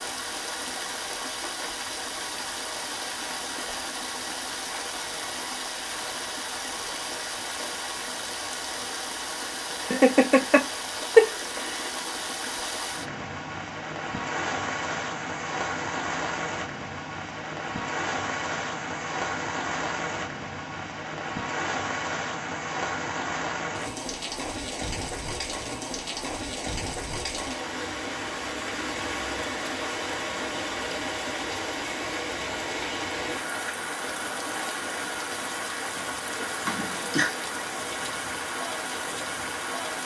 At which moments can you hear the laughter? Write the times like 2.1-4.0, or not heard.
9.9-11.9, 36.6-37.3.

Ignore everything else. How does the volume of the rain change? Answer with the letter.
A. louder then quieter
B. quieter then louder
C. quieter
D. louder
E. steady
E.